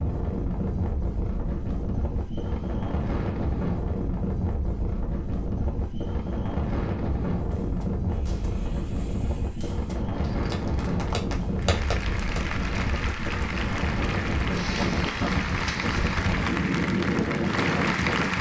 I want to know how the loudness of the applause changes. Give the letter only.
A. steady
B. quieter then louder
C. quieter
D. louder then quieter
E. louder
E.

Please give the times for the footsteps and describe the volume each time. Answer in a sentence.
The footsteps can't be heard in this clip.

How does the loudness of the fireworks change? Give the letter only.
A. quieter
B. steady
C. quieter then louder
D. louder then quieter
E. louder
E.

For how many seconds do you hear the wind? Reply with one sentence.
The wind can be heard for 18 seconds in total.